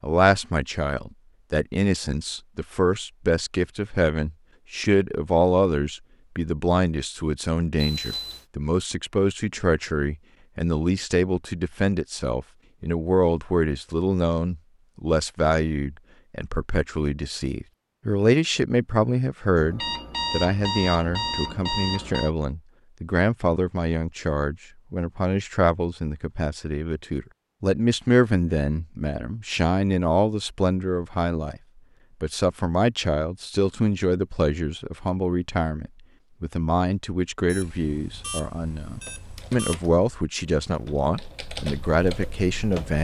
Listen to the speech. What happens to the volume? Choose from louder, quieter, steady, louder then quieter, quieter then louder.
steady.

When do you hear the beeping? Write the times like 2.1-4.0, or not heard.
7.8-8.4, 19.6-22.3, 37.5-39.8.